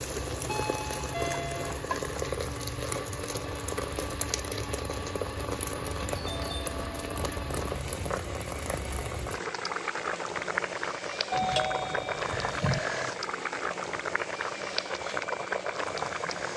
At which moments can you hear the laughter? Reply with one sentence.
The laughter can't be heard in this clip.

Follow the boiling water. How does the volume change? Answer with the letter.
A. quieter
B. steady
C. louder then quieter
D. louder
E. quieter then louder
B.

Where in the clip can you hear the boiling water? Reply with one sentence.
The boiling water can be heard from 0.0 to 16.5 s.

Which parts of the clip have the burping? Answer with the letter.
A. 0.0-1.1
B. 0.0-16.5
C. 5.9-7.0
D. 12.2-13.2
D.